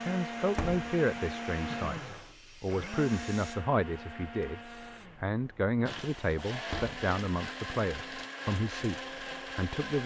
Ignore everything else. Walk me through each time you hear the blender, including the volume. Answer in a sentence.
The blender can be heard from 0.0 to 10.0 s, getting quieter then louder.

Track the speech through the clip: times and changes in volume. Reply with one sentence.
The speech can be heard from 0.0 to 10.0 s, at a steady volume.